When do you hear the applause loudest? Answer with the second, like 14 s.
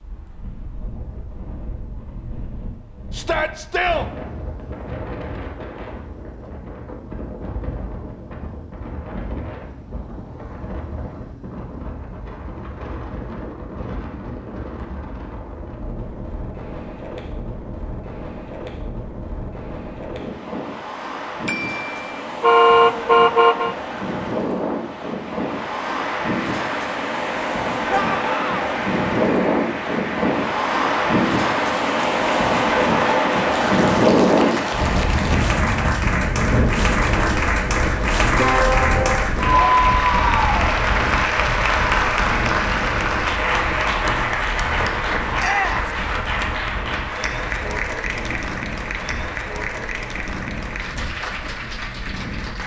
40 s.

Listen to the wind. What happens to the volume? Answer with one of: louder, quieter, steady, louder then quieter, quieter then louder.
louder then quieter.